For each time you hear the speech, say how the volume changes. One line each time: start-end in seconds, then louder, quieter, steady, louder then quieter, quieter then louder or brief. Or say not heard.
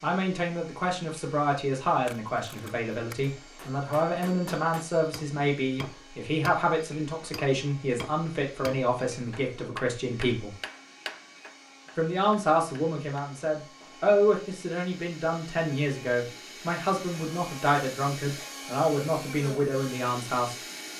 0.0-10.6 steady
11.9-20.6 steady.